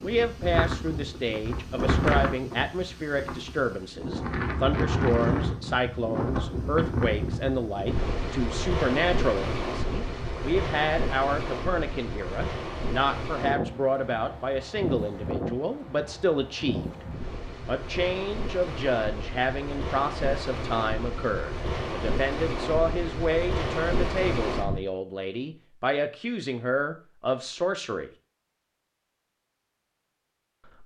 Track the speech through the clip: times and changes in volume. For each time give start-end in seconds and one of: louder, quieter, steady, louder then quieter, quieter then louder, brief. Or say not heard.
0.0-16.9 steady
17.6-28.1 steady.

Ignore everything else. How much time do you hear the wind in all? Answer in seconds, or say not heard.
25 s.